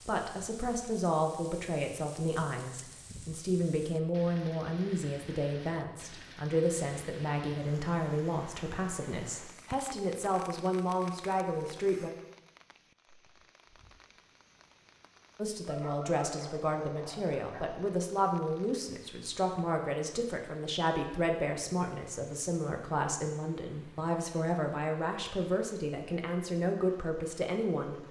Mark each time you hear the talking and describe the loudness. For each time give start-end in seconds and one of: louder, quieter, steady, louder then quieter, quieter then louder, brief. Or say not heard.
0.0-12.1 steady
15.3-28.0 steady.